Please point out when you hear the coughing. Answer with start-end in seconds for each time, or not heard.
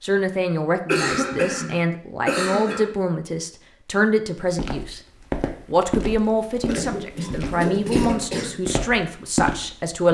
0.8-3.0, 6.7-8.6.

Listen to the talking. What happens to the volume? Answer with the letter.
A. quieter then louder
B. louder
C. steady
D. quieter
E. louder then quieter
C.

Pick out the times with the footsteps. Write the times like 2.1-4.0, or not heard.
4.4-9.9.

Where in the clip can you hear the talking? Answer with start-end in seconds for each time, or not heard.
0.0-5.0, 5.7-10.1.